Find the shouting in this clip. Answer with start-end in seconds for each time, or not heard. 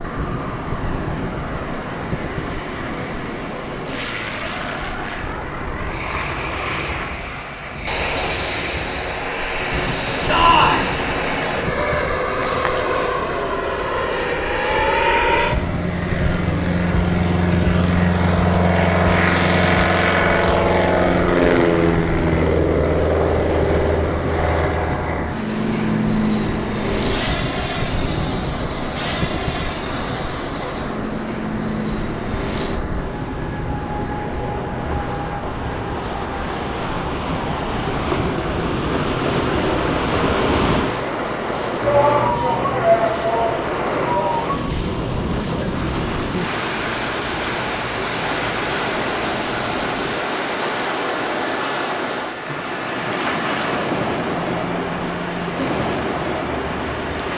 10.2-10.9, 41.8-44.4.